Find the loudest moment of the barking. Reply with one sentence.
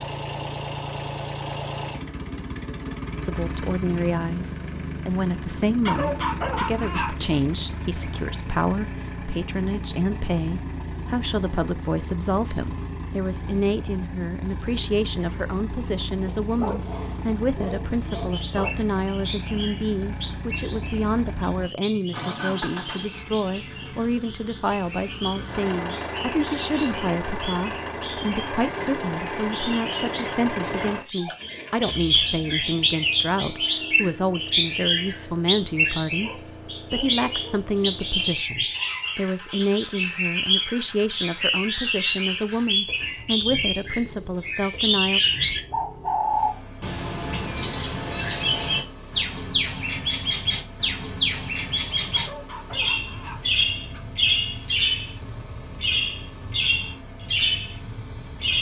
The volume of the barking peaks at 6 seconds.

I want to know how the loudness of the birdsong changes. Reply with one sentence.
The loudness of the birdsong goes up.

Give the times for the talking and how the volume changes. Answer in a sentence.
You can hear the talking from 3.2 to 45.2 s, at a steady volume.